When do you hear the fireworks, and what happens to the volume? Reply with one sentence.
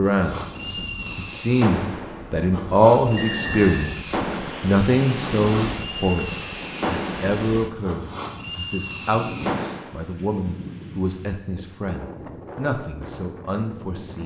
The fireworks can be heard from 0.0 to 10.0 s, at a steady volume.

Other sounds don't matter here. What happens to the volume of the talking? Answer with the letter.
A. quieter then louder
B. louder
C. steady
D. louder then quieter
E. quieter
E.